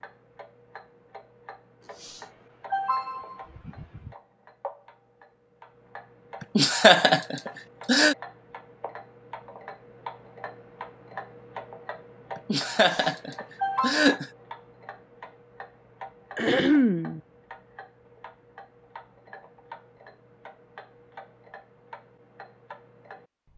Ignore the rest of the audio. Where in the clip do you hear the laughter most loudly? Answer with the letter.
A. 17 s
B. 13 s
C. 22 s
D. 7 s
D.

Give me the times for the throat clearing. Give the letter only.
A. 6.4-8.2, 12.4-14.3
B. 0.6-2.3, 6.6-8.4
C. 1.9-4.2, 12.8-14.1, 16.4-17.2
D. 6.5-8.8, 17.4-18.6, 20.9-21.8
C.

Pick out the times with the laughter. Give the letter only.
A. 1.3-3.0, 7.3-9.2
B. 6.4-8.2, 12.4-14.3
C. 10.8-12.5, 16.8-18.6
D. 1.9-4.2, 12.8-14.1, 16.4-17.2
B.